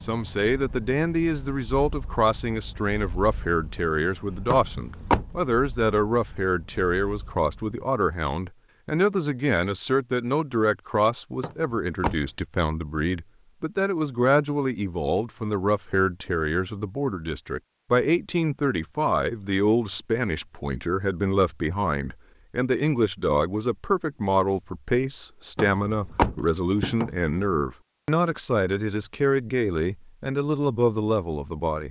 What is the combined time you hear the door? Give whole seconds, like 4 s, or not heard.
4 s.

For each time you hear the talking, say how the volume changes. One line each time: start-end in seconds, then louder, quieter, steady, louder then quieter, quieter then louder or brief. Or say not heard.
0.0-31.8 steady.